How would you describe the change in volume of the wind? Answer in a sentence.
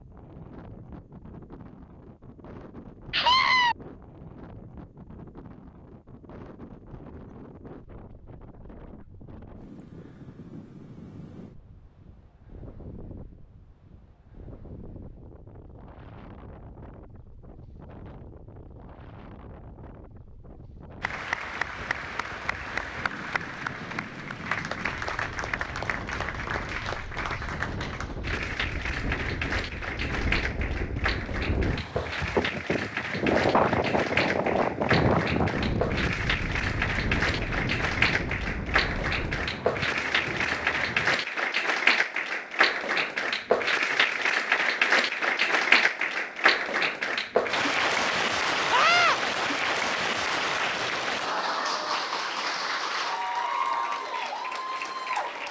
The volume of the wind goes up.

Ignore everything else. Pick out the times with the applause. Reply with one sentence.
The applause can be heard from 21.0 to 55.4 s.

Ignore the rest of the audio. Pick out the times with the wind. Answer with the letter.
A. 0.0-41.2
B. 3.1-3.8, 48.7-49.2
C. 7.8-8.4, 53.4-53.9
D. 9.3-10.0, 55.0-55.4
A.